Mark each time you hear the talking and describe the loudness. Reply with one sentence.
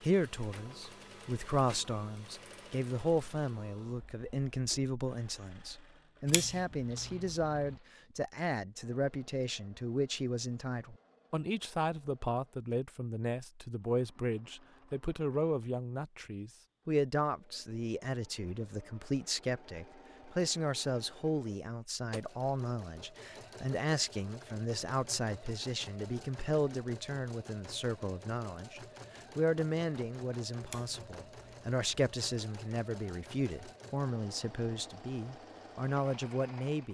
You can hear the talking from 0.0 to 36.9 s, at a steady volume.